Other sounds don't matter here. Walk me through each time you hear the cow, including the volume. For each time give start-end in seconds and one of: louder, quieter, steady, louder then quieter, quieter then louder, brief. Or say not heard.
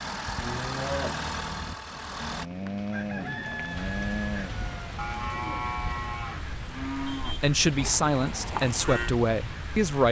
0.3-9.2 steady.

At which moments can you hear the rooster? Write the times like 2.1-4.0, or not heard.
2.9-5.0.